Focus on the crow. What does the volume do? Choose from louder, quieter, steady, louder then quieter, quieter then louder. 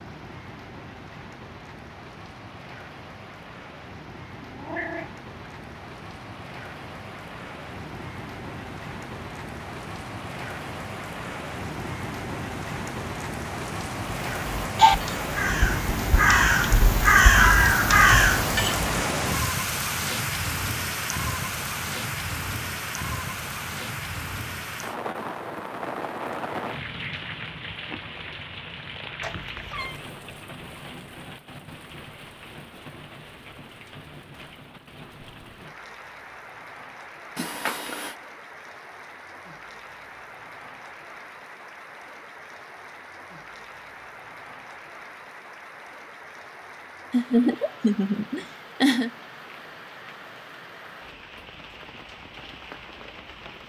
louder.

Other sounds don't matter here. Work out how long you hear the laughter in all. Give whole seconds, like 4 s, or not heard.
2 s.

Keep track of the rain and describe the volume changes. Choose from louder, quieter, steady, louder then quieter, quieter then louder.
louder then quieter.